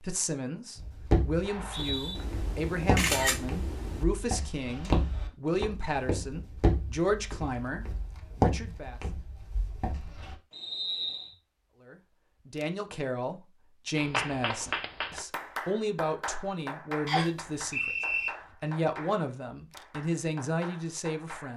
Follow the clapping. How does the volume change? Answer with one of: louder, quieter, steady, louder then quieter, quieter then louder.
quieter.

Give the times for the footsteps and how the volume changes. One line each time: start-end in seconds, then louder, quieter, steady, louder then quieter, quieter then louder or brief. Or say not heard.
0.8-10.3 louder.